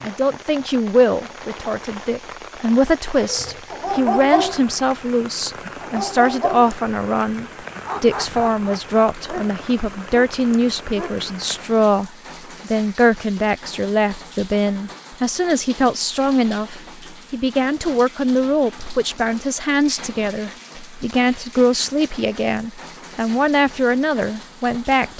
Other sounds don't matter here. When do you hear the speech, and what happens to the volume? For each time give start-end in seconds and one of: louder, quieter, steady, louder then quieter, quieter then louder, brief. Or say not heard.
0.0-25.1 steady.